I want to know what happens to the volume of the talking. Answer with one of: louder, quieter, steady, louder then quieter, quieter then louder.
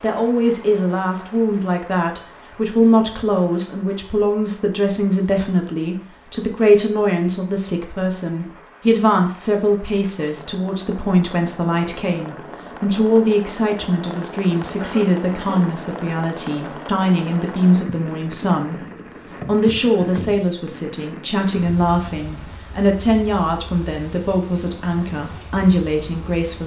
steady.